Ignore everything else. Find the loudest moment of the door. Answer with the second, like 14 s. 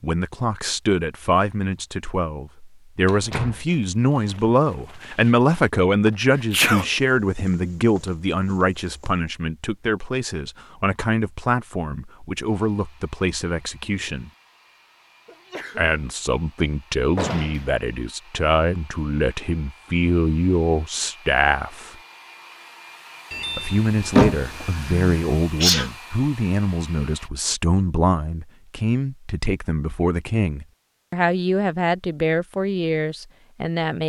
24 s.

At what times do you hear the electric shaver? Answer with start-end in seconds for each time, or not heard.
not heard.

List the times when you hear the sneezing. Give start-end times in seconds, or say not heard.
6.3-6.8, 15.2-15.9, 24.8-25.9.